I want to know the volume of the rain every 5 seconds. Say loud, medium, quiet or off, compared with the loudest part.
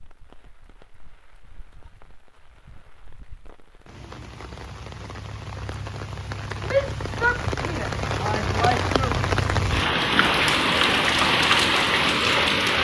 quiet, medium, loud.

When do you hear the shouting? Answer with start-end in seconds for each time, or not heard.
6.7-9.2.